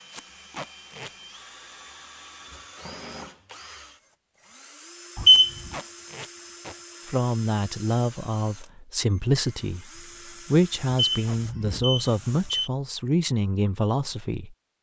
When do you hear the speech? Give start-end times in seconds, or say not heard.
7.0-14.6.